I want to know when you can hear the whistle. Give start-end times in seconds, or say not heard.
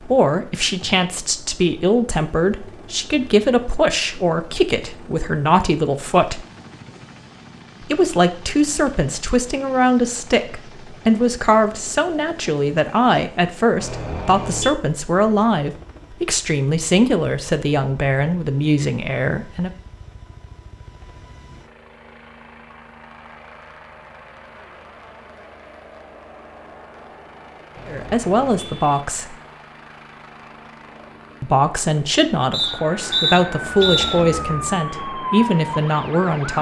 32.5-34.2.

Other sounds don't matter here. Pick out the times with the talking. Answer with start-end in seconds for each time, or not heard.
0.0-6.5, 7.8-19.7, 27.9-29.4, 31.4-36.5.